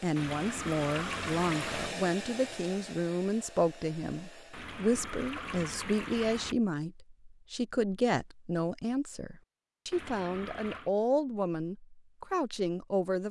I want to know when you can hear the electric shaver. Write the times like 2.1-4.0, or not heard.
not heard.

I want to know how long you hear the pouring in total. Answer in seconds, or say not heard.
5 s.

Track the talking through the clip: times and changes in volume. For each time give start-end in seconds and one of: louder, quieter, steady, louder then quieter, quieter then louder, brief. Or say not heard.
0.0-13.2 steady.